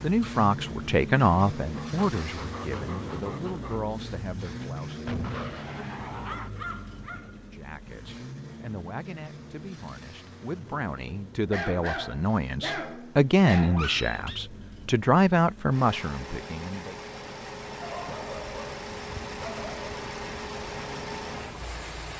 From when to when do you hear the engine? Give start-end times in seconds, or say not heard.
0.0-22.1.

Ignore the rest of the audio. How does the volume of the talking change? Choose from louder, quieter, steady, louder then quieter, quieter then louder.
quieter then louder.